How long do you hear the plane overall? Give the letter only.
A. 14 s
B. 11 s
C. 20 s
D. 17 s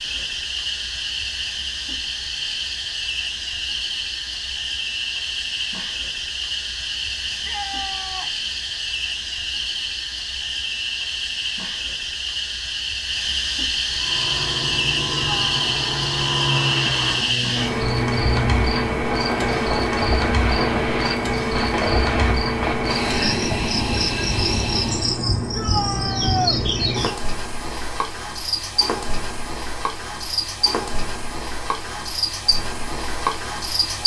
B.